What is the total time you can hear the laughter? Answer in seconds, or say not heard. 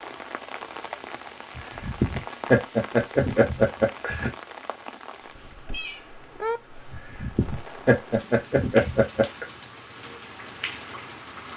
5 s.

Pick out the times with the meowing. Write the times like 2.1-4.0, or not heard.
5.7-6.6.